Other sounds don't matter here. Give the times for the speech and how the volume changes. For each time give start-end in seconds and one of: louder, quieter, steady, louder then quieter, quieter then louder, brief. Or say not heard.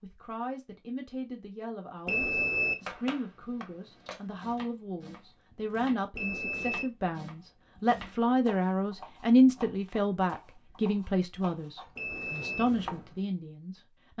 0.0-14.1 louder then quieter.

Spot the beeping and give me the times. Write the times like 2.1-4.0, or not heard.
2.0-2.8, 6.2-6.8, 11.9-12.7.